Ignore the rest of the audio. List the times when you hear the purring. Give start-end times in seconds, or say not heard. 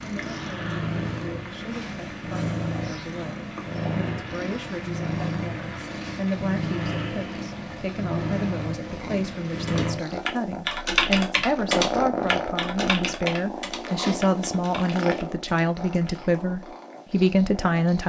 0.0-18.0.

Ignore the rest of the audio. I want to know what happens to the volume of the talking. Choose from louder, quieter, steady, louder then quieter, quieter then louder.
louder.